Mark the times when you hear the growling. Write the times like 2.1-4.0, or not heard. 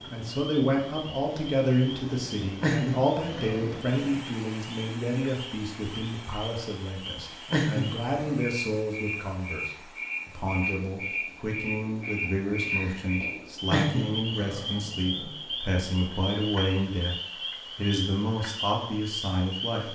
2.6-4.2, 7.5-8.4, 13.7-15.3.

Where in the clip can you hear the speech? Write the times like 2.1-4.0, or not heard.
0.0-19.8.